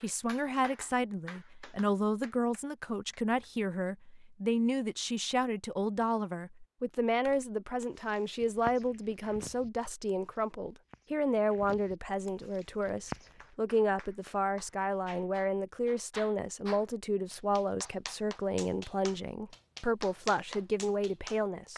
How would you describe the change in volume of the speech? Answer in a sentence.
The loudness of the speech stays about the same.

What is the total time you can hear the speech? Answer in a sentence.
You can hear the speech for 22 seconds altogether.